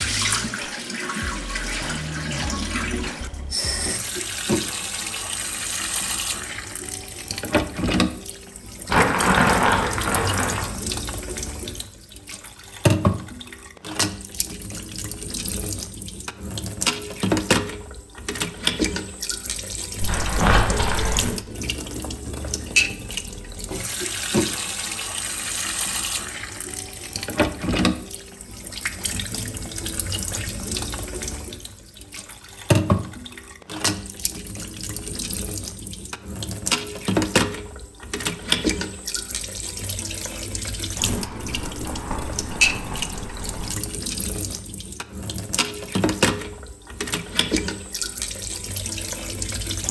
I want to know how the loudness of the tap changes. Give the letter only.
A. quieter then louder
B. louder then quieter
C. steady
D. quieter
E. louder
C.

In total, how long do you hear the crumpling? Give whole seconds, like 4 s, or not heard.
6 s.